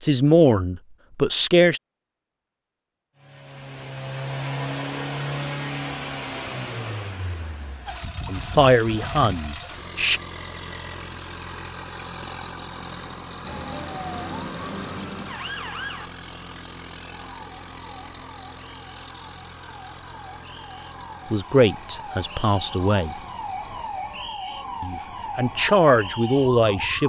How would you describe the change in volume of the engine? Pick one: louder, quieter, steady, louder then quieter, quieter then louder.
quieter.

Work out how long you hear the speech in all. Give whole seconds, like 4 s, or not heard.
8 s.